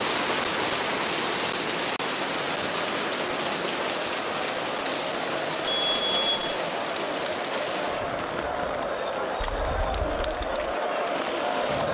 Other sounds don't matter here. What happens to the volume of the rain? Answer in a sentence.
The loudness of the rain goes down.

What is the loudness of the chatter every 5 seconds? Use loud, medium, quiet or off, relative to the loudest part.
medium, loud, loud.